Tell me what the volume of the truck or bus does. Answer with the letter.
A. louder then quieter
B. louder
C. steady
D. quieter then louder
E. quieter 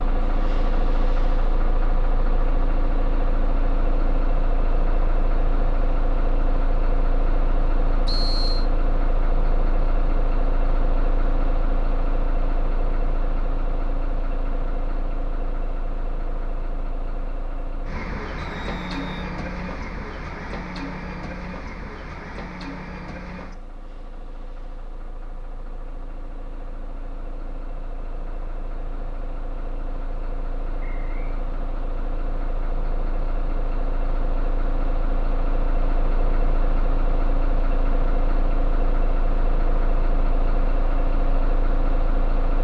D.